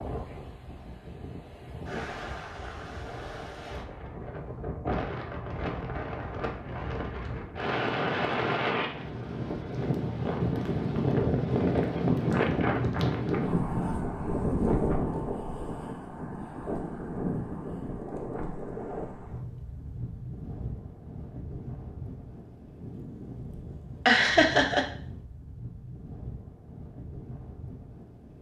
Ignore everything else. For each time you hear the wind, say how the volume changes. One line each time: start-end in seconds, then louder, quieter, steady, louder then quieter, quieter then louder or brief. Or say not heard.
0.0-28.3 louder then quieter.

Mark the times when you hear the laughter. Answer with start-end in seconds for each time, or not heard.
24.1-24.9.